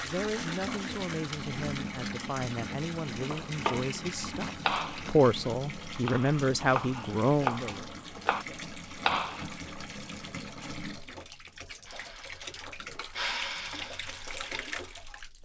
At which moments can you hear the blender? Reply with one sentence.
The blender can be heard from 11.8 to 15.2 s.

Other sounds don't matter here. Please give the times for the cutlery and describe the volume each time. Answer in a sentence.
You can't hear the cutlery here.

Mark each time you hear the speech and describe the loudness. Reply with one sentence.
You can hear the speech from 0.0 to 7.8 s, getting louder.